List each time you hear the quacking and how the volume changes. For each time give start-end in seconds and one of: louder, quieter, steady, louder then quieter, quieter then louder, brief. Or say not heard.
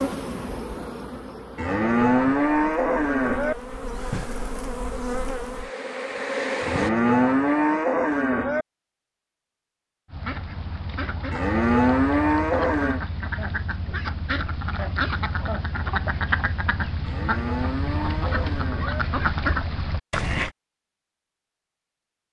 10.1-20.5 louder.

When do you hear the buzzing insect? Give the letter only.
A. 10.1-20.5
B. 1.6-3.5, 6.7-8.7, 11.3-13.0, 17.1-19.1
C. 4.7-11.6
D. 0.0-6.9
D.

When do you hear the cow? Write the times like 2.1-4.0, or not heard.
1.6-3.5, 6.7-8.7, 11.3-13.0, 17.1-19.1.